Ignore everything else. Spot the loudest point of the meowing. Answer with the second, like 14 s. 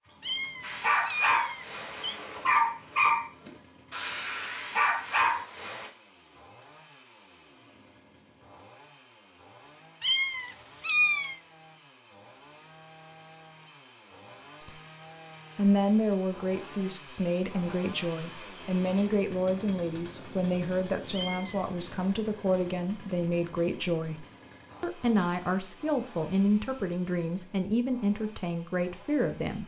11 s.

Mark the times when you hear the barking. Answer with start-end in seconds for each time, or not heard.
0.6-5.9.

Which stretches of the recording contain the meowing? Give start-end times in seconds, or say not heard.
0.2-2.2, 10.0-11.4, 21.1-21.8.